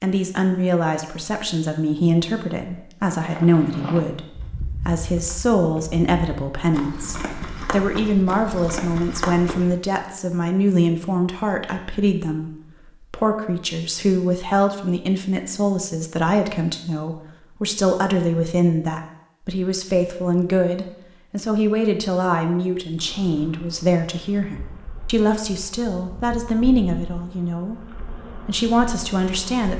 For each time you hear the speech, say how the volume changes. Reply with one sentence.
You can hear the speech from 0.0 to 29.7 s, at a steady volume.